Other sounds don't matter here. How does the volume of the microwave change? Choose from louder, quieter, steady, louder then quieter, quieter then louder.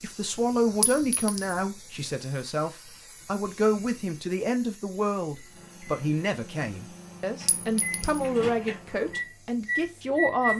louder.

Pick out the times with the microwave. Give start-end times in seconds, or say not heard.
5.3-10.5.